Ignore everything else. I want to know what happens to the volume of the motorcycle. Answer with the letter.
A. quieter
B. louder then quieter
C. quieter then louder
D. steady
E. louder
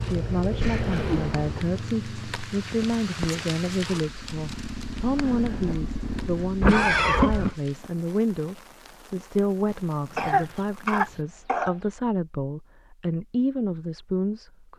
C.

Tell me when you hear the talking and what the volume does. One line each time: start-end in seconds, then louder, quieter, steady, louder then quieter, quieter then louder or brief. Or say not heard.
0.0-14.7 steady.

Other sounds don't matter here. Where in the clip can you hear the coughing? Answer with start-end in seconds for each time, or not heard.
0.6-1.6, 6.6-7.5, 10.2-11.8.